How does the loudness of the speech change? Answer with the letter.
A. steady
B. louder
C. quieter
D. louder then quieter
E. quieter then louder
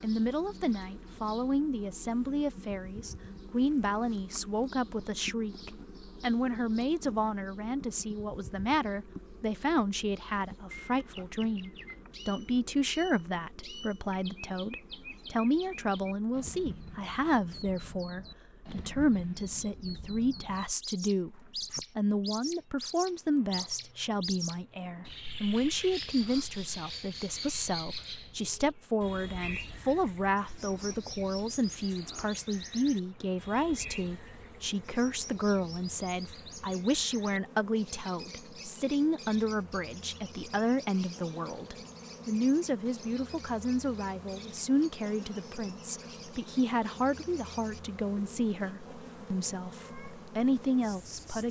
A.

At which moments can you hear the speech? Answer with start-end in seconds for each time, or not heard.
0.0-51.4.